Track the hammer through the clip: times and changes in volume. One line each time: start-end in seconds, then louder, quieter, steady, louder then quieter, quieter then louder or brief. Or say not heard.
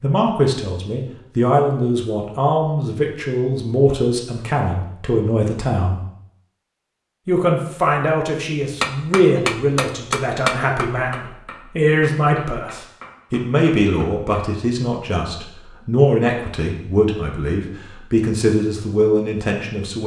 8.8-14.4 quieter.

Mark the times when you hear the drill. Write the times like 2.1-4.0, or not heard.
not heard.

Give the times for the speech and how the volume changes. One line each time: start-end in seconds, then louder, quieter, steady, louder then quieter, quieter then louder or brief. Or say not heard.
0.0-6.0 steady
7.2-20.0 steady.